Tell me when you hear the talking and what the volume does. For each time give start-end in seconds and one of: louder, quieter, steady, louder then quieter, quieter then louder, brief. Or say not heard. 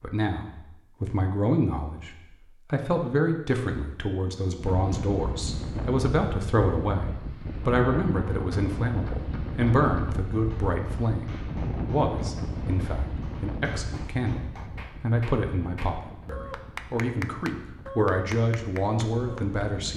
0.0-2.1 brief
2.7-19.9 steady.